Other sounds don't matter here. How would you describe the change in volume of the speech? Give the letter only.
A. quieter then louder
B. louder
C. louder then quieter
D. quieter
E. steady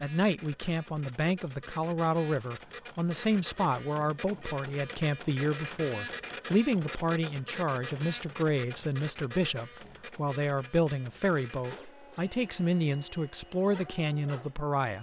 E.